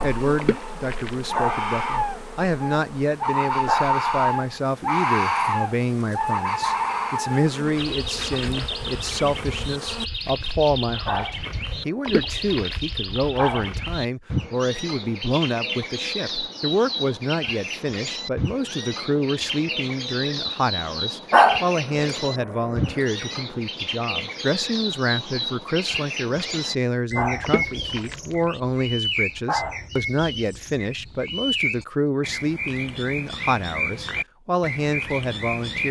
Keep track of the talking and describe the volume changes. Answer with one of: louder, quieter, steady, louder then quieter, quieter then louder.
steady.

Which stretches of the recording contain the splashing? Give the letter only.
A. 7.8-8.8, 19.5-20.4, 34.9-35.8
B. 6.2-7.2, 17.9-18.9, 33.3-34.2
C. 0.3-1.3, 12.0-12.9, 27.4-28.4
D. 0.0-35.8
C.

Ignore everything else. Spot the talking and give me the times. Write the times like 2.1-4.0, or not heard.
0.0-35.8.